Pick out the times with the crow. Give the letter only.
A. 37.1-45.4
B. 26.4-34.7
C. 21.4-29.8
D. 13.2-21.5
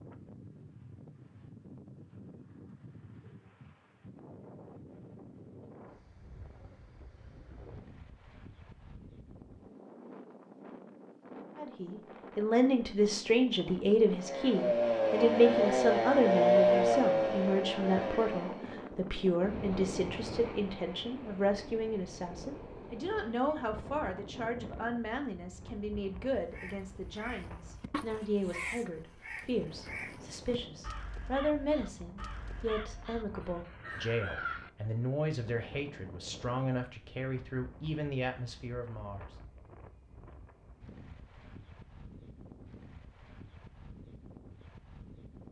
B.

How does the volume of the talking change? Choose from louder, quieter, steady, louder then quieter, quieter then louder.
quieter.